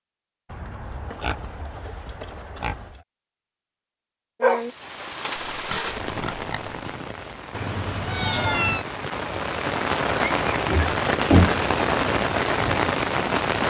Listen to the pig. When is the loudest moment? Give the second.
11 s.